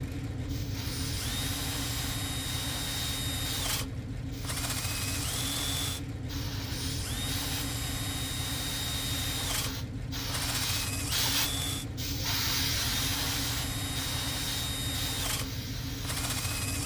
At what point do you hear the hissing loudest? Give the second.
13 s.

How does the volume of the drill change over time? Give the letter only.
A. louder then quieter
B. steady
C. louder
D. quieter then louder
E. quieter
B.